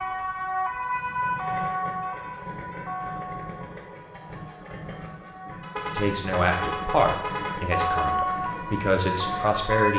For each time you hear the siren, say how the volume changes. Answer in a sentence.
The siren can be heard from 0.0 to 9.9 s, getting quieter then louder.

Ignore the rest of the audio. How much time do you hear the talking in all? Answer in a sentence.
You can hear the talking for 4 seconds altogether.